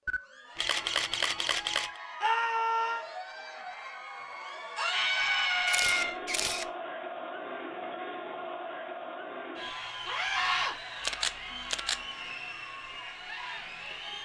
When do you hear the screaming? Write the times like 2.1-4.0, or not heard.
2.2-3.0, 4.8-6.2, 10.1-10.8.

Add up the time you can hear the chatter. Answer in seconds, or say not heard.
14 s.